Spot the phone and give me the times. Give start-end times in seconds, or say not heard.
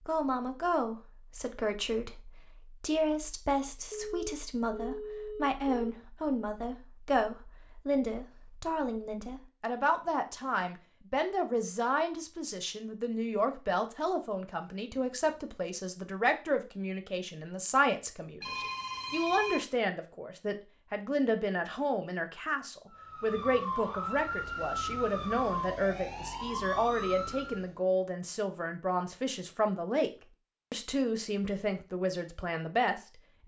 3.9-5.9, 18.4-19.6.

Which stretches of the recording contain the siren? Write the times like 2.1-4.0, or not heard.
22.9-27.6.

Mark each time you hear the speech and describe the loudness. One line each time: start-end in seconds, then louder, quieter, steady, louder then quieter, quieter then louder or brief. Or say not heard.
0.0-30.1 steady
30.7-33.4 brief.